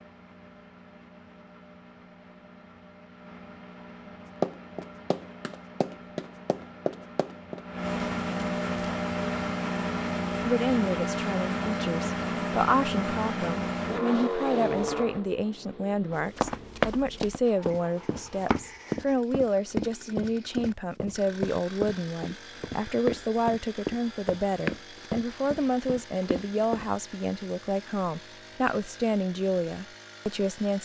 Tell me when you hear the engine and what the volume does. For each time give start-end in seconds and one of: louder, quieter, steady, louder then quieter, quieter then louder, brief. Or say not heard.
0.0-30.8 louder then quieter.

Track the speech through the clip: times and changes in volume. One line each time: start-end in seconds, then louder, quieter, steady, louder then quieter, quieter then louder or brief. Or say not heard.
10.4-30.8 steady.